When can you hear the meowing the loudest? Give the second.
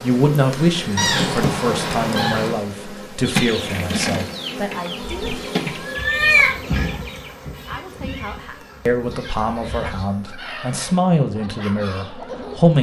6 s.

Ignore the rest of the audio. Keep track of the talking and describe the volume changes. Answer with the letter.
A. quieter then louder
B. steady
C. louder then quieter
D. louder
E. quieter
A.